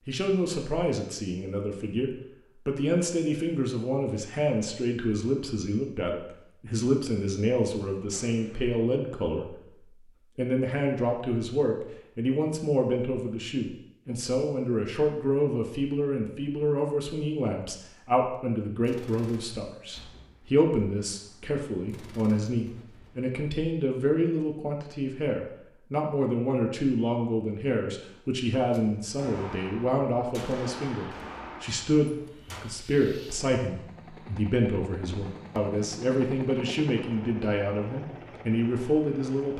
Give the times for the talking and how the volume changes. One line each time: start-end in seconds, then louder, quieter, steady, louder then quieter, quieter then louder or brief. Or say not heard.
0.1-39.5 steady.